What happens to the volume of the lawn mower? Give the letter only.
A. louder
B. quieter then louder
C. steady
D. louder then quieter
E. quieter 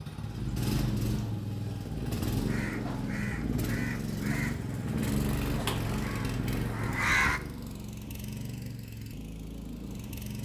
E.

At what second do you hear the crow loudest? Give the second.
7 s.